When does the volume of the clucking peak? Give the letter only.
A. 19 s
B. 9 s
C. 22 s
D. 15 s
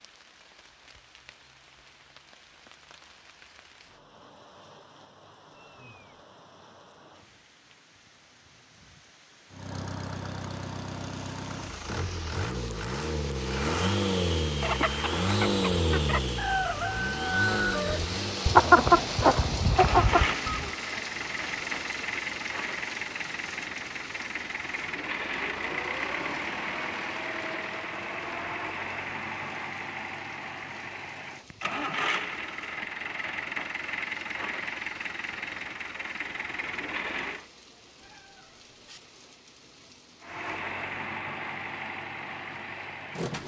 A.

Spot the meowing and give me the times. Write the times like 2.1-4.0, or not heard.
5.5-6.2, 38.0-39.0.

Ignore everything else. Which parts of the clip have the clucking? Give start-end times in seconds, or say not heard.
14.5-20.7.